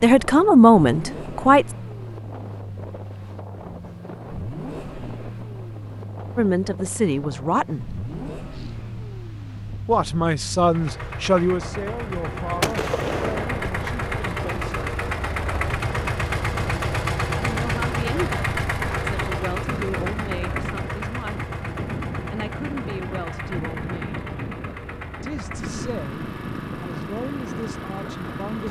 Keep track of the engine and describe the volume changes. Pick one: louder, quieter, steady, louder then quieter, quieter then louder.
louder then quieter.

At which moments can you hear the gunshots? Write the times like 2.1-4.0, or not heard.
12.6-13.8.